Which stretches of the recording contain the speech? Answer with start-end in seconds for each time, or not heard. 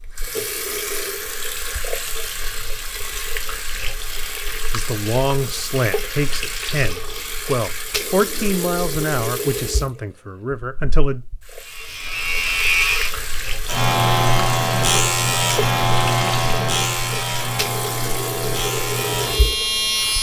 4.7-11.2.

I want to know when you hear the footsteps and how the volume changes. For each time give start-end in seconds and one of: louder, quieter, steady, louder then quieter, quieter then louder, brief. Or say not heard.
not heard.